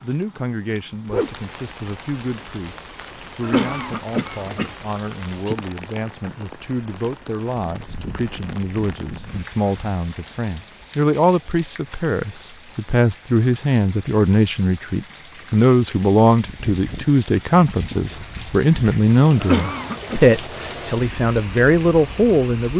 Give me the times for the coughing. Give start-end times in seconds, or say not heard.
3.4-4.8, 19.4-20.2.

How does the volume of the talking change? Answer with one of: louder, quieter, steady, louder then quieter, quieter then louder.
louder.